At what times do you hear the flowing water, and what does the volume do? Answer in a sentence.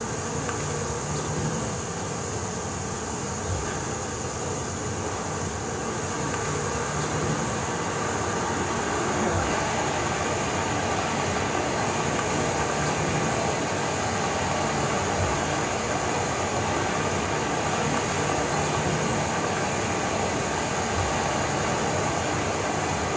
You can hear the flowing water from 0.0 to 23.1 s, getting louder.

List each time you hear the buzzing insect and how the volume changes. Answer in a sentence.
The buzzing insect can be heard from 0.0 to 23.1 s, at a steady volume.